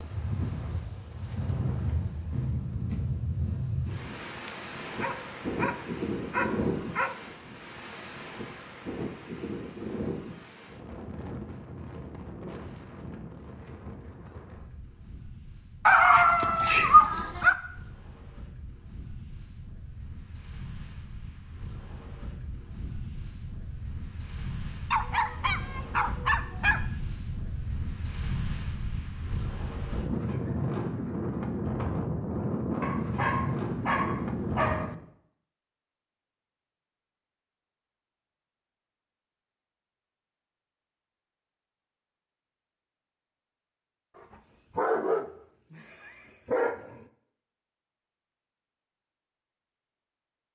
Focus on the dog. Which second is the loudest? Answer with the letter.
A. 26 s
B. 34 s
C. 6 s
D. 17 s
D.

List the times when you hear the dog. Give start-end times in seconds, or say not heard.
4.5-7.2, 15.8-17.6, 24.9-26.8, 32.8-35.0, 44.1-47.0.